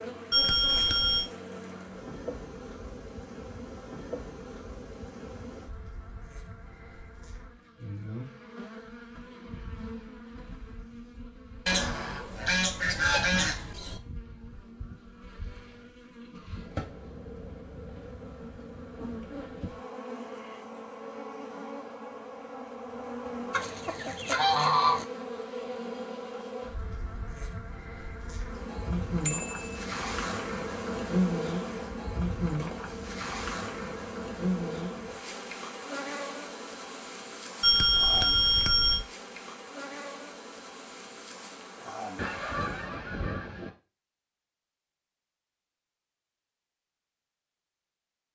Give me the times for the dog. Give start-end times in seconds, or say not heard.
not heard.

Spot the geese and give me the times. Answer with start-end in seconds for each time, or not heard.
11.7-14.0, 23.5-25.1, 42.1-43.7.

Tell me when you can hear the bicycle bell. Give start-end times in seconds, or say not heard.
0.3-1.2, 29.2-29.9, 37.6-39.0.